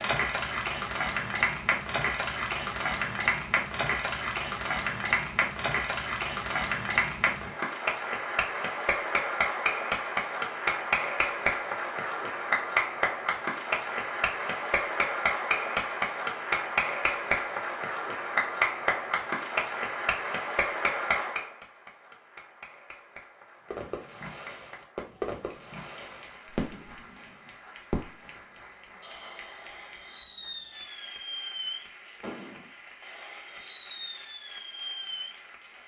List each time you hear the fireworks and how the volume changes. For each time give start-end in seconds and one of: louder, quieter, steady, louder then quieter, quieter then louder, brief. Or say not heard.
23.7-35.4 steady.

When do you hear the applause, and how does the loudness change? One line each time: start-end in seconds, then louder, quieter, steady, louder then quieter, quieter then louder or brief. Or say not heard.
0.0-35.8 quieter.